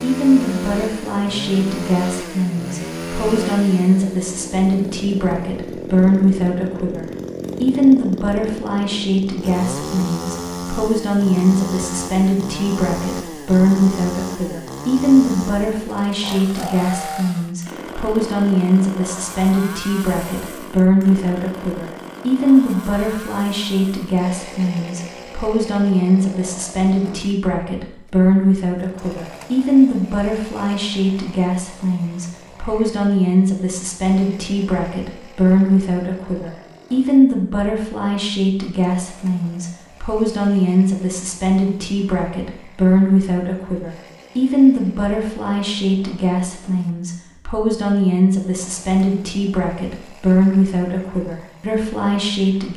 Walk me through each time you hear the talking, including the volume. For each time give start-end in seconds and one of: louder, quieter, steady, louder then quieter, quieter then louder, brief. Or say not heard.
0.0-52.7 steady.